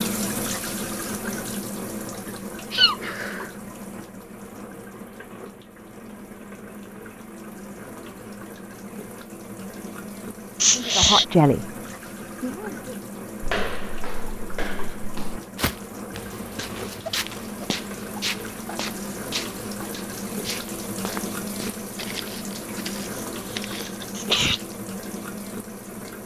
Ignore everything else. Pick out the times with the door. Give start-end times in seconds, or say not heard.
not heard.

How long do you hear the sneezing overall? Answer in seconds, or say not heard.
3 s.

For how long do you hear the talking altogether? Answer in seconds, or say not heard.
2 s.